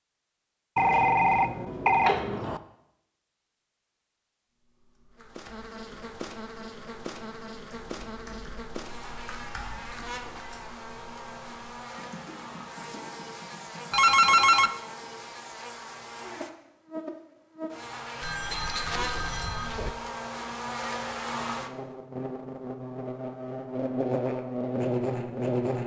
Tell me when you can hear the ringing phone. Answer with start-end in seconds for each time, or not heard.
0.8-2.6, 13.9-14.7, 18.2-19.9.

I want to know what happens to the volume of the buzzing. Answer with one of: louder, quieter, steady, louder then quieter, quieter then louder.
louder.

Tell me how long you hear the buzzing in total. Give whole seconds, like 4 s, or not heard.
21 s.